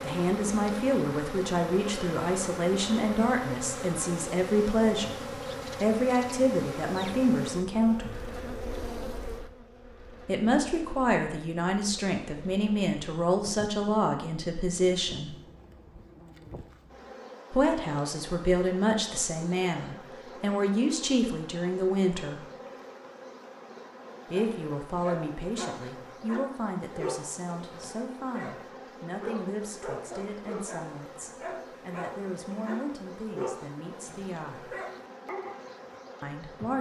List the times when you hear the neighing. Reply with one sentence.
You can't hear the neighing here.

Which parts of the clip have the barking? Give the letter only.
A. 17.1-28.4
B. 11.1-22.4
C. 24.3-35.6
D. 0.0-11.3
C.